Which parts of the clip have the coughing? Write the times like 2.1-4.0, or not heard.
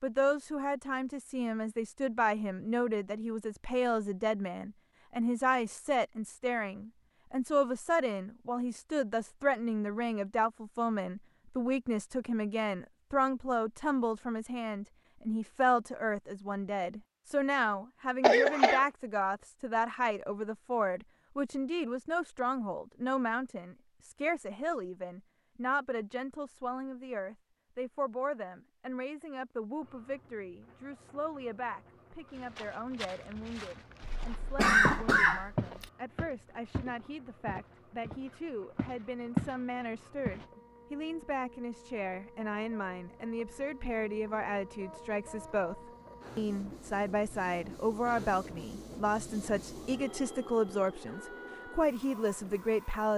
18.2-18.9, 34.2-35.9.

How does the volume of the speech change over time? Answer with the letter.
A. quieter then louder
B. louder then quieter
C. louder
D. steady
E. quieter
A.